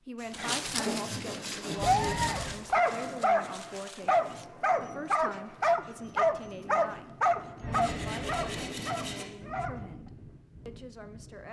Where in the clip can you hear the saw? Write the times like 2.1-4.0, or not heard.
0.1-2.5, 7.7-9.2.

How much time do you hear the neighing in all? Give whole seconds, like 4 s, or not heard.
2 s.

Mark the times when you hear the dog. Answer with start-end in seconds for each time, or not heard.
0.3-9.8.